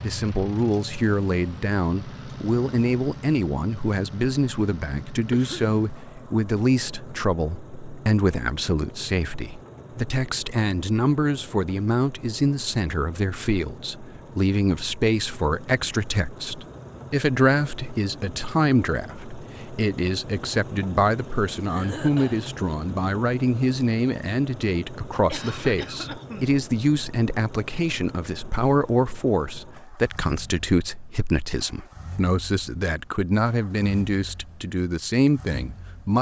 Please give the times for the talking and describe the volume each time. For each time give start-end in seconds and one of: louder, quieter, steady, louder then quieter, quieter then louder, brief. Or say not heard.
0.0-36.1 steady.